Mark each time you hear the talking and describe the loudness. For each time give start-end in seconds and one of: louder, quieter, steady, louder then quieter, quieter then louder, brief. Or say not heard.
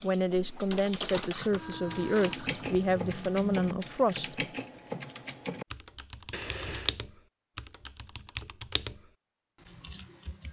0.0-4.3 steady.